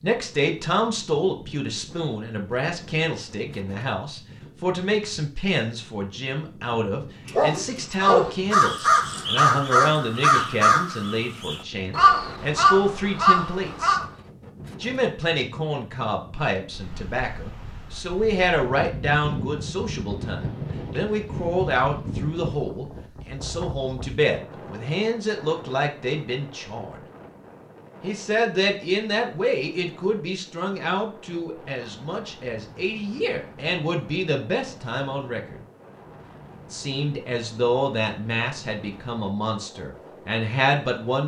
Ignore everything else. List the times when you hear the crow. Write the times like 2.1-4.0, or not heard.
8.0-14.1.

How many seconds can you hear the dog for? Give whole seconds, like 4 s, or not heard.
2 s.